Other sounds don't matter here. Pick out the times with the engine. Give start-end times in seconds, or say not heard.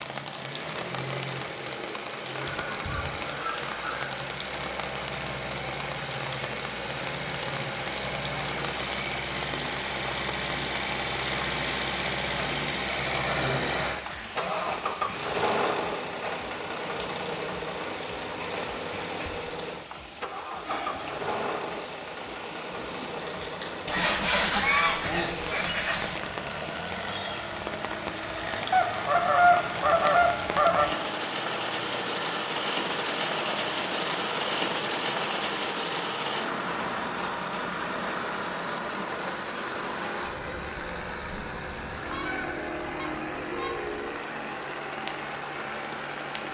0.0-46.5.